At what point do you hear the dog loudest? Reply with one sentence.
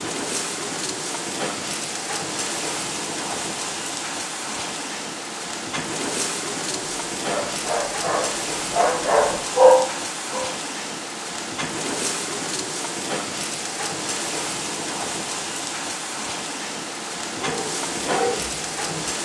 The volume of the dog peaks at 10 seconds.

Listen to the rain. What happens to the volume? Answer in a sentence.
The volume of the rain stays about the same.